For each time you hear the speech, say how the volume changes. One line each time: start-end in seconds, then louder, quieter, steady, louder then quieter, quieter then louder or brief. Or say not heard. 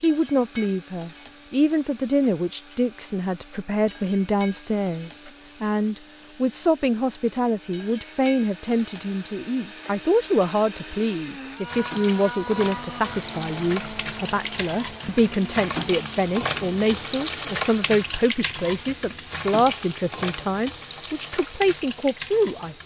0.0-22.8 steady.